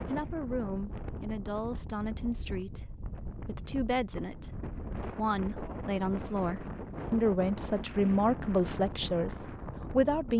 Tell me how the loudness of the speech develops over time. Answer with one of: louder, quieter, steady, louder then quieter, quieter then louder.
louder.